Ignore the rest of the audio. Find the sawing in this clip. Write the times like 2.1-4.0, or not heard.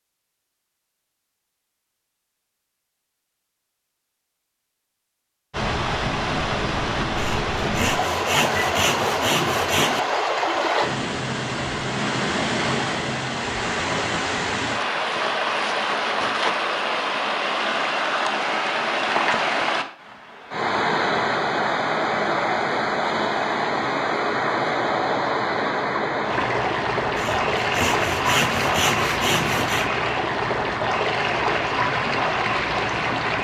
7.2-10.0, 27.1-29.9.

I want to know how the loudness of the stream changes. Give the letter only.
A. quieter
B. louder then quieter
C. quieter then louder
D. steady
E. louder
D.